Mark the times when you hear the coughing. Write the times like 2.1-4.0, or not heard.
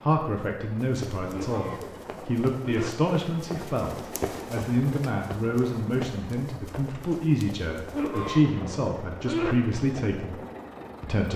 1.3-2.9, 7.9-9.6.